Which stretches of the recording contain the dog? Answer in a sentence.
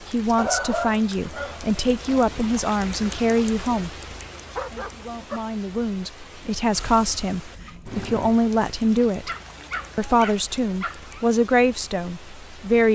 You can hear the dog from 0.3 to 2.4 s, from 4.5 to 5.4 s and from 9.1 to 11.2 s.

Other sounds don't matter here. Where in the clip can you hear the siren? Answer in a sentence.
You can't hear the siren here.